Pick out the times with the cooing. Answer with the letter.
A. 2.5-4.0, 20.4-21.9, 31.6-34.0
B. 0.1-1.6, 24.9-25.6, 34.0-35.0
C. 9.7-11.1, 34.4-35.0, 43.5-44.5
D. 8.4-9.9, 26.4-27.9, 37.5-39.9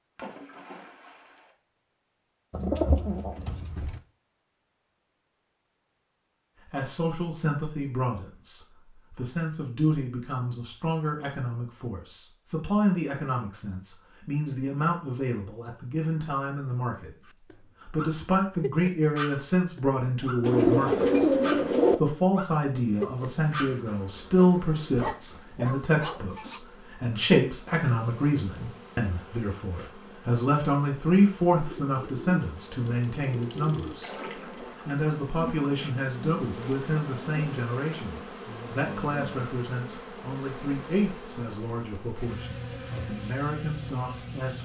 A.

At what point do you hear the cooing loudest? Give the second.
21 s.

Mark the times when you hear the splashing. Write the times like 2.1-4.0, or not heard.
0.1-1.6, 24.9-25.6, 34.0-35.0.